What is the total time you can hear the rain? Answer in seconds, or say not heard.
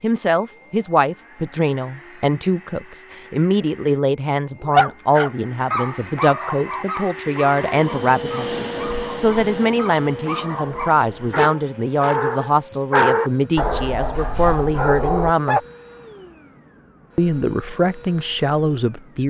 not heard.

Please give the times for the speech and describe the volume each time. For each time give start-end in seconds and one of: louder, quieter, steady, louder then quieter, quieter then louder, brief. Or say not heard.
0.0-15.6 steady
17.1-19.2 brief.